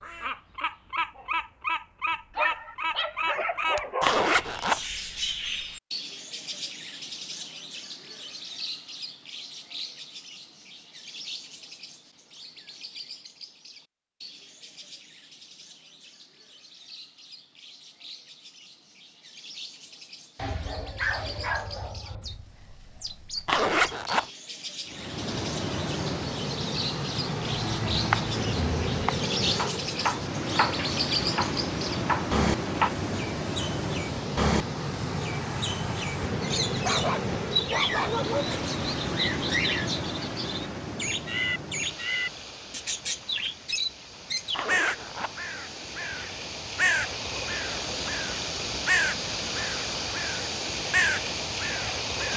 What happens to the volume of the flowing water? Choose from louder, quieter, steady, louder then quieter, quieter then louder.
quieter then louder.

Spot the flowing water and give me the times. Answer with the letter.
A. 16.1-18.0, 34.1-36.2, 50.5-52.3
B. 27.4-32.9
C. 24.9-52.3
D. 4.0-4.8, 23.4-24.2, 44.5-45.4
C.